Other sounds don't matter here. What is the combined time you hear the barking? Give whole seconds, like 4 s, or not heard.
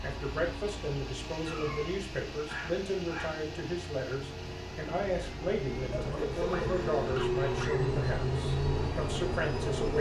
4 s.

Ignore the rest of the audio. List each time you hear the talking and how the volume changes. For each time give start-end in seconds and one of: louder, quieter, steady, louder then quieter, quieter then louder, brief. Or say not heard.
0.0-9.9 steady.